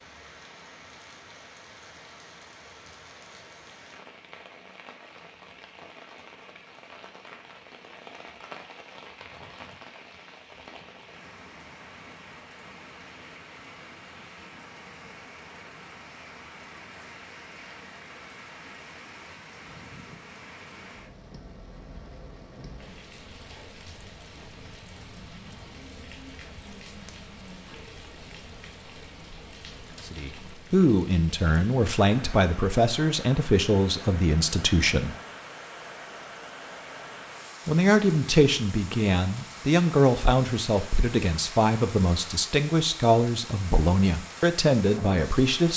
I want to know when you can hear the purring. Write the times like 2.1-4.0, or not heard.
not heard.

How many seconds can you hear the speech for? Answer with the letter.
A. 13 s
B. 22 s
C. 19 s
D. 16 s
A.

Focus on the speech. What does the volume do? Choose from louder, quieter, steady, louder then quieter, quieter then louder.
steady.